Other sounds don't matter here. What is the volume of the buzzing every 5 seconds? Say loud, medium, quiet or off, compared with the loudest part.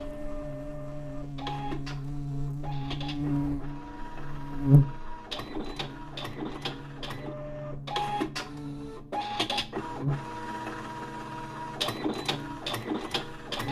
loud, quiet, medium.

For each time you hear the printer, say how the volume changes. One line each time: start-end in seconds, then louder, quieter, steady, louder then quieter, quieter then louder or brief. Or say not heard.
0.0-13.6 louder.